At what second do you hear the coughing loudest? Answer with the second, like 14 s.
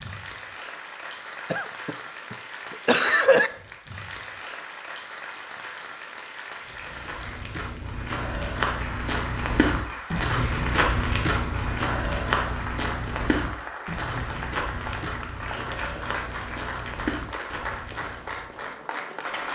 3 s.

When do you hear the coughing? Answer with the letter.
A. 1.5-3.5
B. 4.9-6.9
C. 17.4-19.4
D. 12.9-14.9
A.